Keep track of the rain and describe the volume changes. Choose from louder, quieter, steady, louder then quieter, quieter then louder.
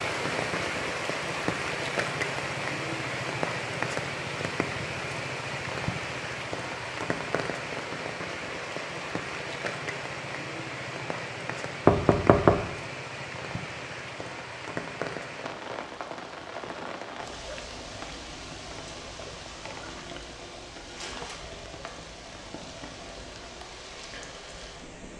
quieter.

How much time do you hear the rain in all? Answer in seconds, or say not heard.
25 s.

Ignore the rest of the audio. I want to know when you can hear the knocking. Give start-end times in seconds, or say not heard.
11.8-12.7.